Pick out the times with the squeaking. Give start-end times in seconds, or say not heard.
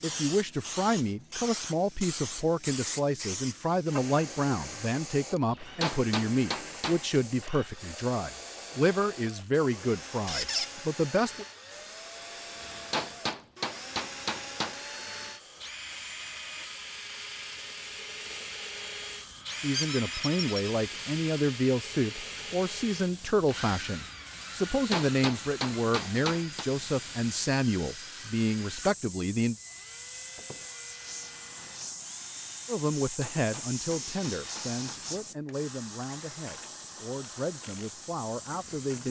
10.2-10.7, 19.7-20.6, 30.4-30.8.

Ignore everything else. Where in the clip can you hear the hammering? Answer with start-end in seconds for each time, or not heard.
5.5-7.2, 12.6-14.8, 24.7-26.6, 33.0-34.8.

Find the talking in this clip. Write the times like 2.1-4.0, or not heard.
0.0-11.4, 19.6-29.6, 32.6-39.0.